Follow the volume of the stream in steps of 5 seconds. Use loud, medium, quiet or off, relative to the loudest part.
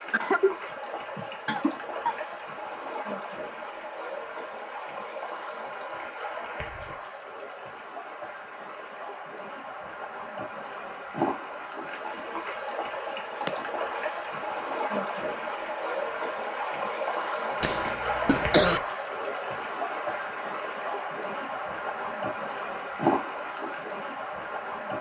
medium, medium, loud, loud, loud.